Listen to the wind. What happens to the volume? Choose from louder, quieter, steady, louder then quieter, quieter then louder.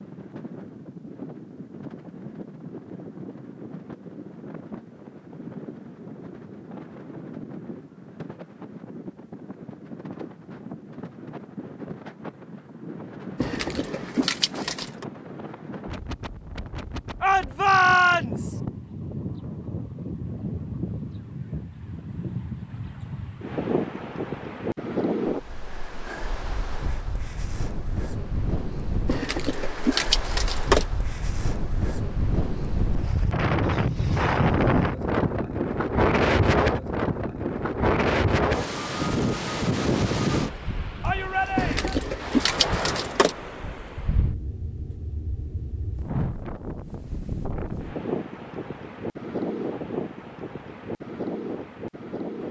louder then quieter.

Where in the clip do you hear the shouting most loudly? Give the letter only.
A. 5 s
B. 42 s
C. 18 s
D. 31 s
C.